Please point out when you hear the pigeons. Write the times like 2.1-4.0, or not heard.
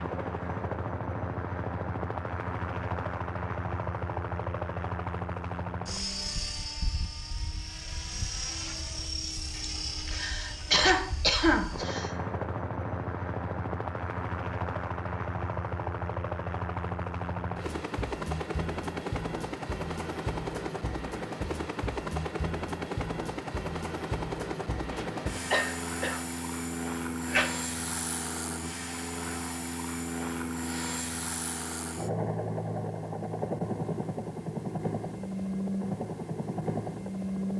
not heard.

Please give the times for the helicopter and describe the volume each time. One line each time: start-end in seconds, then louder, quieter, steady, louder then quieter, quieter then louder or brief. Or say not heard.
0.0-37.5 steady.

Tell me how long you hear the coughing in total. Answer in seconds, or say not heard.
5 s.